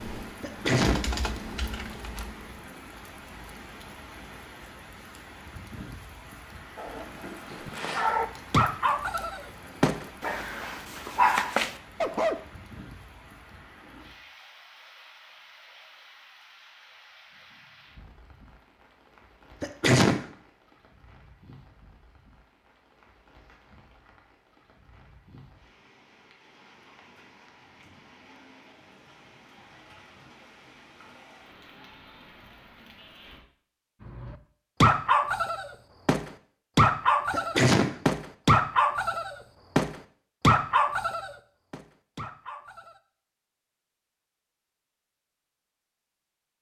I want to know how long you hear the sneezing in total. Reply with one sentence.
You can hear the sneezing for 2 seconds altogether.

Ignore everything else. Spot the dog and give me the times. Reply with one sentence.
You can hear the dog from 6.8 to 12.4 s and from 34.0 to 43.0 s.